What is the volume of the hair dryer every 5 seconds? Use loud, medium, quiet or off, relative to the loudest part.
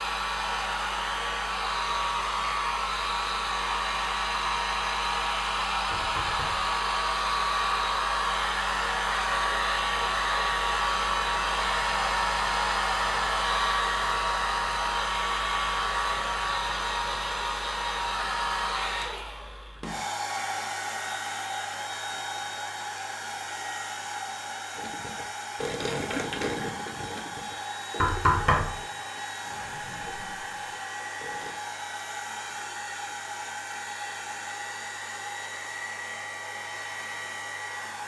loud, loud, loud, loud, medium, medium, medium, medium.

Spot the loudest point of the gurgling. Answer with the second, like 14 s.
26 s.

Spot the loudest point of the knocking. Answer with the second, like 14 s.
28 s.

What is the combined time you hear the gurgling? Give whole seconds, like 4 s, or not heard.
7 s.